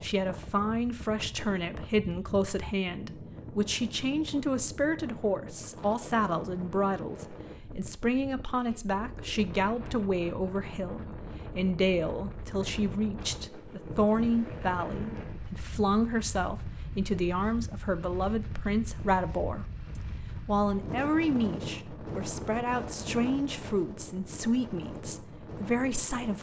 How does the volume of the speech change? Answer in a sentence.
The volume of the speech stays about the same.